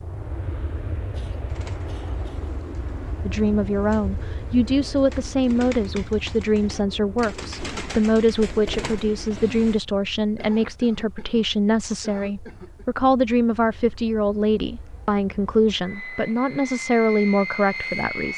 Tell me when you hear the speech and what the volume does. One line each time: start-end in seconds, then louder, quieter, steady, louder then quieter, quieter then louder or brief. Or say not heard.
3.2-18.3 steady.